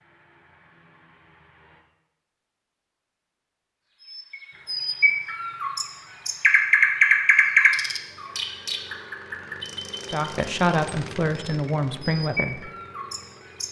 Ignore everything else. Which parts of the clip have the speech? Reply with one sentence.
The speech can be heard from 10.1 to 12.7 s.